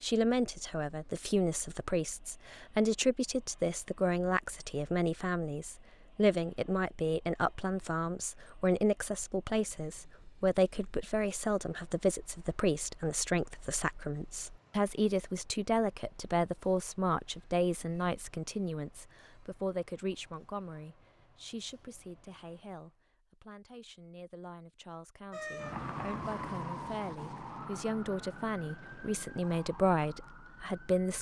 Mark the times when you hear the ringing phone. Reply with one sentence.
The ringing phone can't be heard in this clip.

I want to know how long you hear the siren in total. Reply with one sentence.
You can hear the siren for 6 seconds altogether.